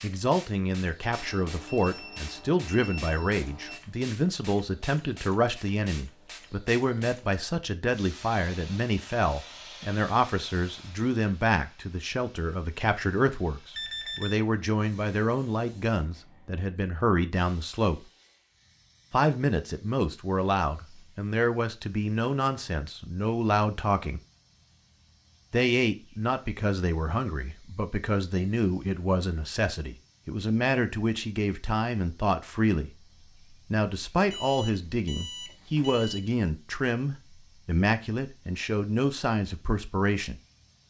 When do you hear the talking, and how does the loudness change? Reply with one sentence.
You can hear the talking from 0.0 to 18.0 s, at a steady volume; from 19.1 to 24.2 s, at a steady volume; and from 25.5 to 40.4 s, at a steady volume.